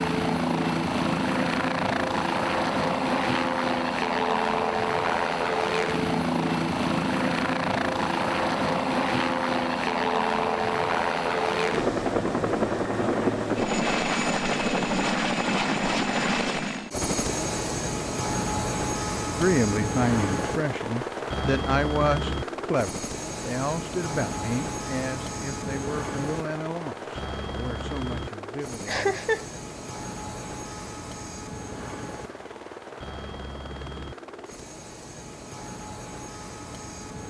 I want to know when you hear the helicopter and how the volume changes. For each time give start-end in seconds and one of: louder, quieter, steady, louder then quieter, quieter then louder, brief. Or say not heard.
0.0-37.2 quieter.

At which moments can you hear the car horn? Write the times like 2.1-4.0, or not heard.
not heard.